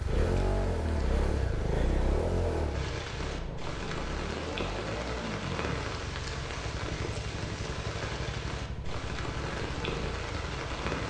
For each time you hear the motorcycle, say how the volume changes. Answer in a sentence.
You can hear the motorcycle from 0.0 to 11.0 s, getting quieter.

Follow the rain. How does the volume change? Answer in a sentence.
The volume of the rain goes up.